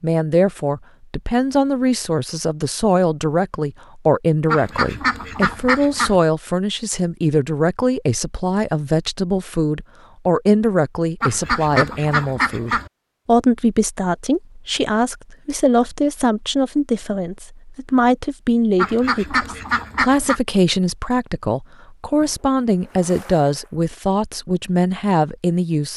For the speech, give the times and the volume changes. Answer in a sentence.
The speech can be heard from 0.0 to 25.9 s, at a steady volume.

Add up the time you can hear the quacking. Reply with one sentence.
You can hear the quacking for 5 seconds altogether.